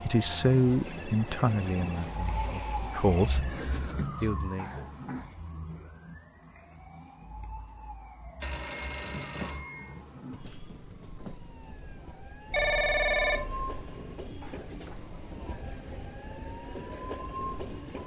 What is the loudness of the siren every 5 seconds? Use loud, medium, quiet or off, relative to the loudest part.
loud, medium, medium, medium.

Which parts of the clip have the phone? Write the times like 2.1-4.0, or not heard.
0.8-3.5, 8.4-10.0, 12.5-13.8.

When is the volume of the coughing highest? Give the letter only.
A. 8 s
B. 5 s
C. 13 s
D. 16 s
B.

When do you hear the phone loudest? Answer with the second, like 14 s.
13 s.